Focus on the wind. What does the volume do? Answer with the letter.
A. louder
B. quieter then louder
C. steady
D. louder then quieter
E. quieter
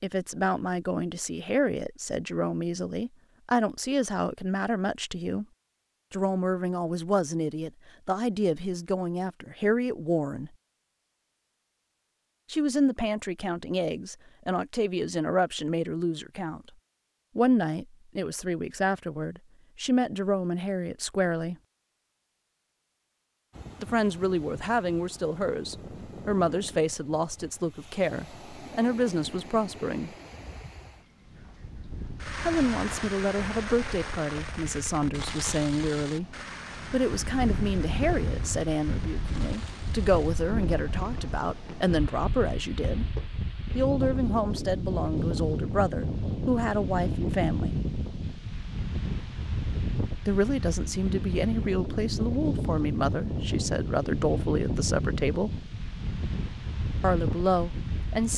A.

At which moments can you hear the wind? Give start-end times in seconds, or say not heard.
23.5-58.3.